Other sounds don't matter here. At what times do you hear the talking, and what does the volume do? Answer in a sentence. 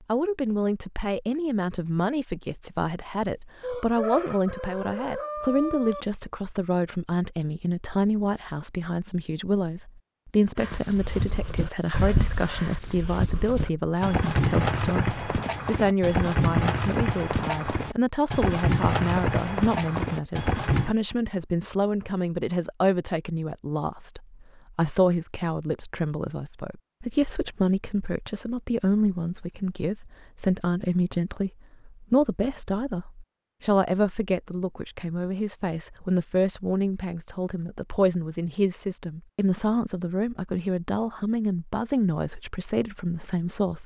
You can hear the talking from 0.1 to 43.8 s, at a steady volume.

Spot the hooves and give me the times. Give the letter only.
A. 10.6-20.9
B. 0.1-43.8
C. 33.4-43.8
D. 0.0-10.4
A.